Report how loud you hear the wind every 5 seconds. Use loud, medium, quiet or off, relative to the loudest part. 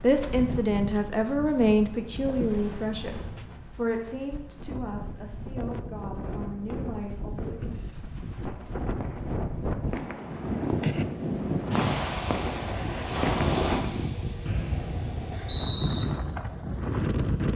medium, medium, loud, loud.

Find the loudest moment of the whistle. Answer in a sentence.
The volume of the whistle peaks at 16 seconds.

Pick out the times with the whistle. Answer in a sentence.
The whistle can be heard from 14.4 to 16.1 s.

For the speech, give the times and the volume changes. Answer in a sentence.
You can hear the speech from 0.0 to 7.5 s, getting quieter.